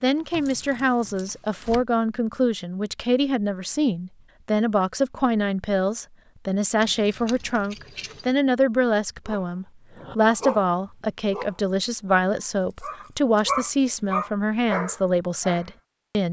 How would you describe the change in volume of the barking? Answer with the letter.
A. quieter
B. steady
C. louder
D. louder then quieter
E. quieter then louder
E.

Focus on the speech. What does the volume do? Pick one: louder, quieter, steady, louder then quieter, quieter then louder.
steady.